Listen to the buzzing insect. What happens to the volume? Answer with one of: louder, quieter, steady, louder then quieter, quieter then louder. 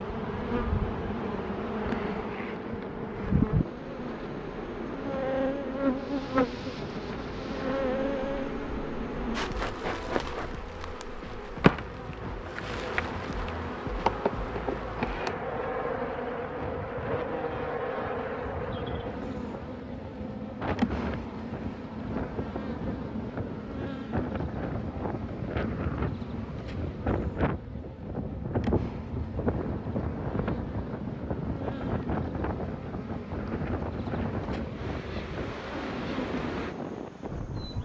quieter.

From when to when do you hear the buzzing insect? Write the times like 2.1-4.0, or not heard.
0.0-37.8.